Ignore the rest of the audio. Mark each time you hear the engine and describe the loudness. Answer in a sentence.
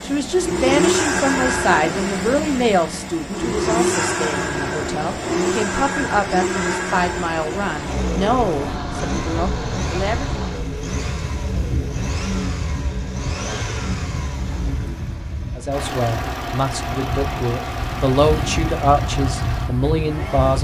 You can hear the engine from 0.0 to 20.5 s, getting quieter.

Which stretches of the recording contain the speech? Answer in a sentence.
You can hear the speech from 0.0 to 10.2 s and from 15.6 to 20.5 s.